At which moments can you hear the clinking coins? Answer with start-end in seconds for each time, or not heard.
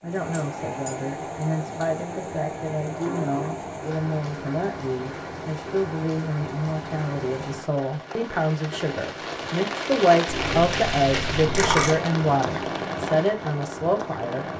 0.1-1.1, 10.2-12.0.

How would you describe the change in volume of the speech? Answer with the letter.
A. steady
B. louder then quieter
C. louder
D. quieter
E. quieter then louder
C.